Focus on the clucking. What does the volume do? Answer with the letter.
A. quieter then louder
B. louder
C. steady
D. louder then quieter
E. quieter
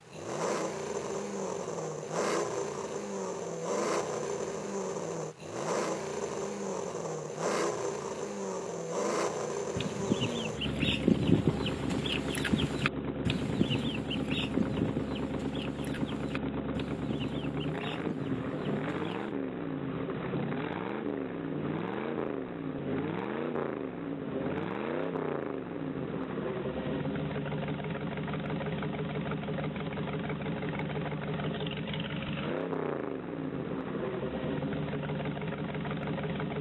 E.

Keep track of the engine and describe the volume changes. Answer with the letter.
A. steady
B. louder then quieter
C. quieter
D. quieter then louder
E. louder
A.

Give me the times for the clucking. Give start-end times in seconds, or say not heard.
9.8-19.3.